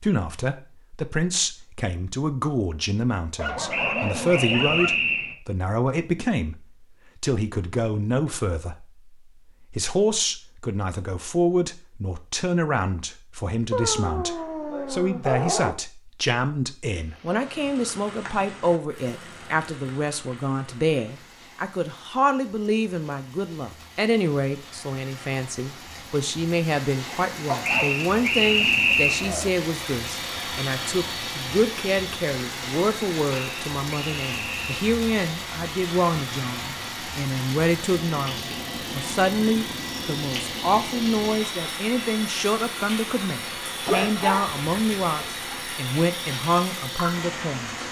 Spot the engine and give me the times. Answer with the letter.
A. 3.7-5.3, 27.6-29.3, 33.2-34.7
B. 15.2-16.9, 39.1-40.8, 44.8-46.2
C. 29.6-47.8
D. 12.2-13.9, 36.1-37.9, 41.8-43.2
C.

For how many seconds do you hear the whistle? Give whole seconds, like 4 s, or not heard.
5 s.